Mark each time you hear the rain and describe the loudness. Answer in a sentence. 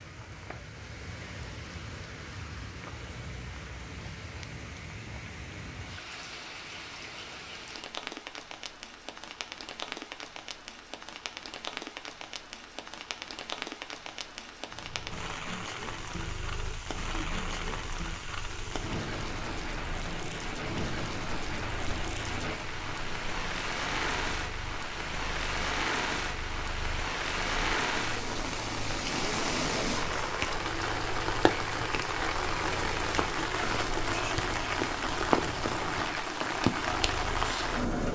You can hear the rain from 0.0 to 38.1 s, getting louder.